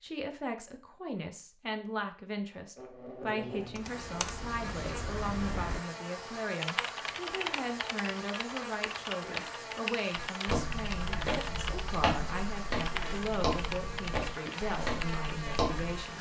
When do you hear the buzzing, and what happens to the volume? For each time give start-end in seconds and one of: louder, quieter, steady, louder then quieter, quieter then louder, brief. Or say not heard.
2.8-16.1 steady.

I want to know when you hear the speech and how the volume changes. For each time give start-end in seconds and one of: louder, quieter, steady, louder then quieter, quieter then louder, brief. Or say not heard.
0.0-16.1 steady.